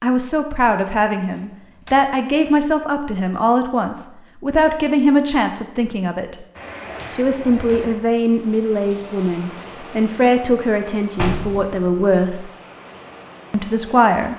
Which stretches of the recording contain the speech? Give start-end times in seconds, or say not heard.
0.0-6.5, 7.2-12.5, 13.5-14.3.